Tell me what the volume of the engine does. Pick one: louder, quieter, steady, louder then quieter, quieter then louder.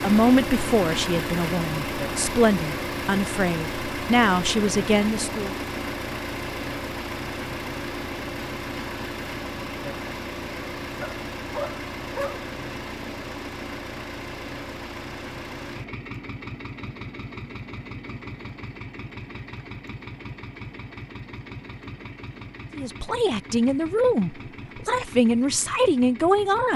quieter.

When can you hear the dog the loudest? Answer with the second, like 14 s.
12 s.